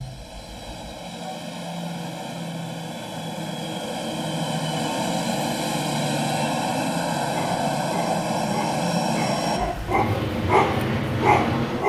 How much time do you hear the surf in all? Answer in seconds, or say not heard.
not heard.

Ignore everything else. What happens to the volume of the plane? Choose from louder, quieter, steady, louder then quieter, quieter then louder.
louder.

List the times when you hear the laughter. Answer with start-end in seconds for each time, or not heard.
not heard.